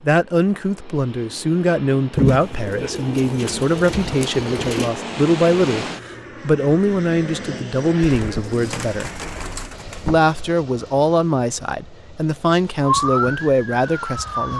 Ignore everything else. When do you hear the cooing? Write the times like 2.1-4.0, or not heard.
2.1-5.0, 8.0-10.3.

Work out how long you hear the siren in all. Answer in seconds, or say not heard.
2 s.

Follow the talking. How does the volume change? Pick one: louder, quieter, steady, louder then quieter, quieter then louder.
steady.